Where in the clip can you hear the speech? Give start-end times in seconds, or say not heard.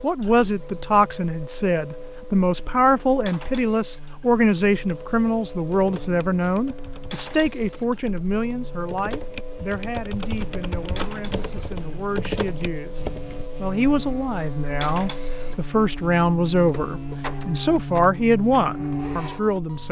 0.0-12.9, 13.6-19.8.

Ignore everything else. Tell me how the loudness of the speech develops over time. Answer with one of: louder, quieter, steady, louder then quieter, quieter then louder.
quieter then louder.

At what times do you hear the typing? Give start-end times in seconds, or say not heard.
4.7-13.5.